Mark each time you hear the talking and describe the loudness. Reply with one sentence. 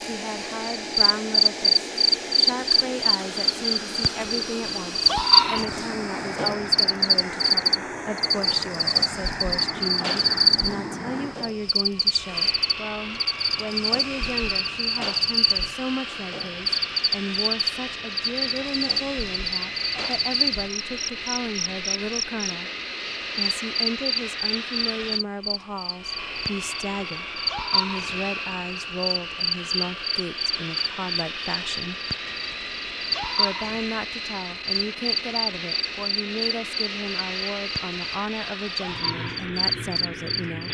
You can hear the talking from 0.0 to 22.7 s, at a steady volume; from 23.4 to 32.0 s, at a steady volume; and from 33.4 to 40.6 s, at a steady volume.